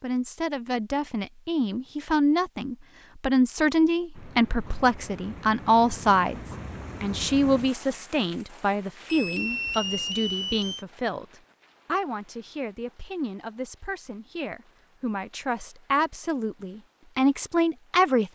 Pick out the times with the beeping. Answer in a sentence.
The beeping can be heard from 9.1 to 10.8 s.